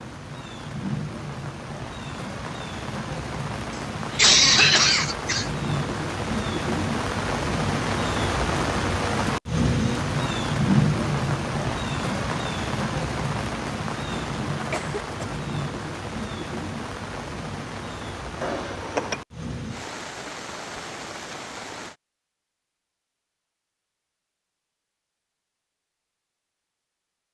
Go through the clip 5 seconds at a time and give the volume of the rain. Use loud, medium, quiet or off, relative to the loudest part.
medium, loud, loud, medium, medium, off.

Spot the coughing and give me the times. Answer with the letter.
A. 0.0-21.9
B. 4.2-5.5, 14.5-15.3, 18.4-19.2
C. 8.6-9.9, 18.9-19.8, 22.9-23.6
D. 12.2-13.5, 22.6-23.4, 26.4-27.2
B.